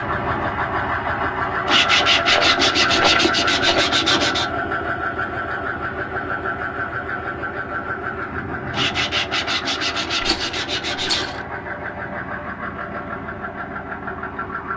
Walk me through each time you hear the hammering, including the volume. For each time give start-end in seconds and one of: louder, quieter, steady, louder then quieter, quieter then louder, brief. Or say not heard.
not heard.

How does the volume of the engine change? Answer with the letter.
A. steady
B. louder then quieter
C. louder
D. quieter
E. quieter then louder
D.